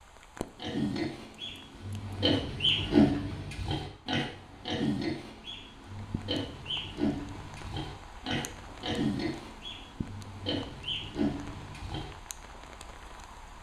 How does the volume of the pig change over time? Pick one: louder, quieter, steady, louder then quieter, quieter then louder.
quieter.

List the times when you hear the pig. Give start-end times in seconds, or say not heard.
0.6-12.2.